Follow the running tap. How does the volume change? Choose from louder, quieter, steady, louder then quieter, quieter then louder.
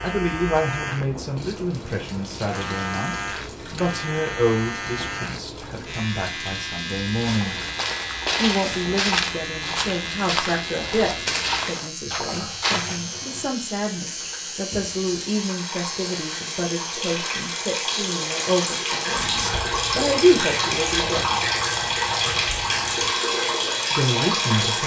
louder.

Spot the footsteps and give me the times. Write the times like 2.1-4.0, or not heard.
7.2-13.0.